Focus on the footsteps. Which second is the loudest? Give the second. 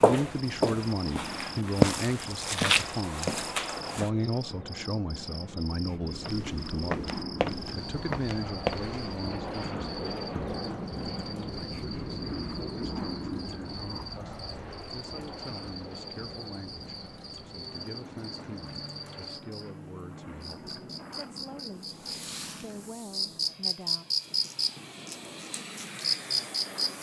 2 s.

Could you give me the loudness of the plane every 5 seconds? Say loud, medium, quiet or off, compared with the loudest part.
medium, loud, loud, medium, medium, medium.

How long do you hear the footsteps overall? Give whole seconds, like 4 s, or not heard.
7 s.